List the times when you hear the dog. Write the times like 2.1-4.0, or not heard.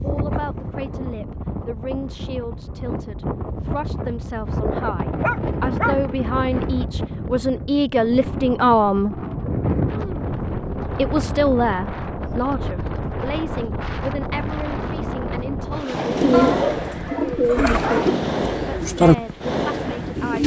5.2-6.0, 16.3-18.2.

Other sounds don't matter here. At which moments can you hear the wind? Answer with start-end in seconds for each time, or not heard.
0.0-20.4.